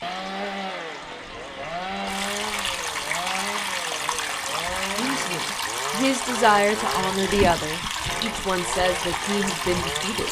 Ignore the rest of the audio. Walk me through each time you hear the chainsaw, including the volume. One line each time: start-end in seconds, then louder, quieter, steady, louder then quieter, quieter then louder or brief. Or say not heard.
0.0-10.2 steady.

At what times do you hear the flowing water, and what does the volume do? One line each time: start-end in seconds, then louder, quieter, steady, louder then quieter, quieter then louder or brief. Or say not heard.
0.0-10.2 louder.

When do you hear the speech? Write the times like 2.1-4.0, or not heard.
5.0-10.2.